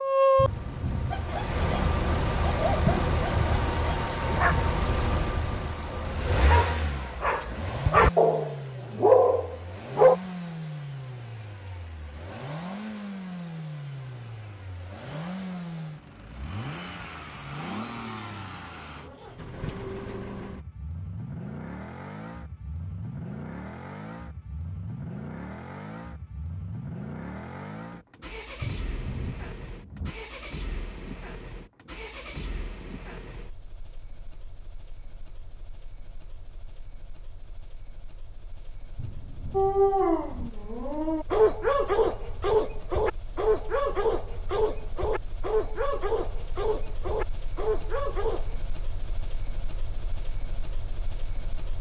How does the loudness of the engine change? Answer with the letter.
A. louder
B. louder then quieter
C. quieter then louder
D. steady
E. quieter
E.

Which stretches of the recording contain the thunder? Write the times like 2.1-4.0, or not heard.
0.3-1.9, 28.6-30.1, 39.0-40.5.